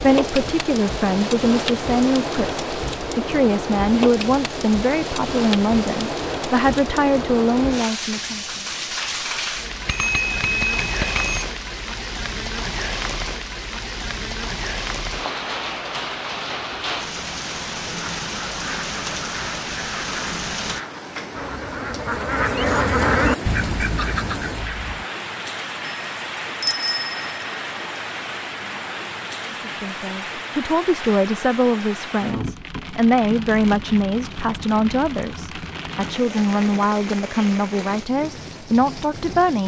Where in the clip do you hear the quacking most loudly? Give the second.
23 s.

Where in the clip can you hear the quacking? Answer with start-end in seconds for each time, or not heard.
18.0-25.1.